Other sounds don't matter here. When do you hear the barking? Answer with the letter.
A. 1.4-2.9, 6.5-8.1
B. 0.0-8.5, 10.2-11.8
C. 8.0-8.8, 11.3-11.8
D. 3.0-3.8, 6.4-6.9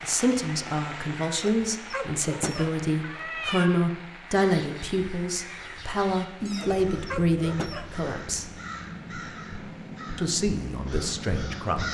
A.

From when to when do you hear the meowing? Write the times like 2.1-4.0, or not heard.
3.0-3.8, 6.4-6.9.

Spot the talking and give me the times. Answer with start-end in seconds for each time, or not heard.
0.0-8.5, 10.2-11.8.